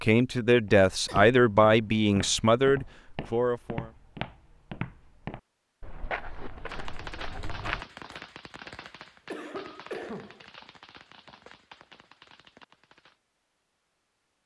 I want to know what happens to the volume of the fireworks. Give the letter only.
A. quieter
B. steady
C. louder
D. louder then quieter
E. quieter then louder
A.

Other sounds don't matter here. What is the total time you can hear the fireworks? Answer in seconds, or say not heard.
7 s.